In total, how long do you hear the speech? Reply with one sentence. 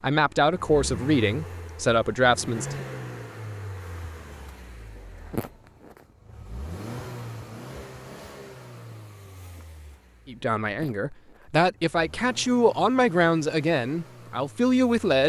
You can hear the speech for 8 seconds altogether.